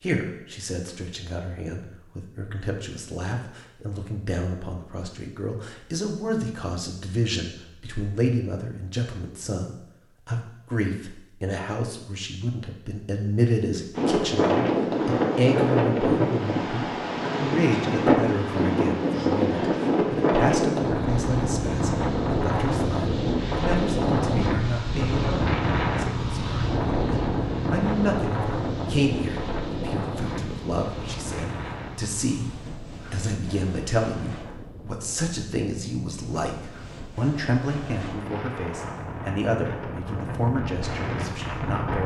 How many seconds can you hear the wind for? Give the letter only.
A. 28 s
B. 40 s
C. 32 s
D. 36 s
A.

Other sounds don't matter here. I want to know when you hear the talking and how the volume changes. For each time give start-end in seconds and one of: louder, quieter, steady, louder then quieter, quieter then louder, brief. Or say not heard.
0.0-42.0 steady.